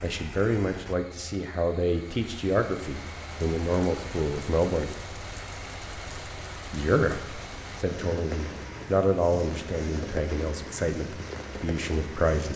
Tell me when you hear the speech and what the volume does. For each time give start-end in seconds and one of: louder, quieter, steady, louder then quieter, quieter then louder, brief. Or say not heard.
0.0-4.9 steady
6.7-12.5 louder then quieter.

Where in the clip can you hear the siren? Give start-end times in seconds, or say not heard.
not heard.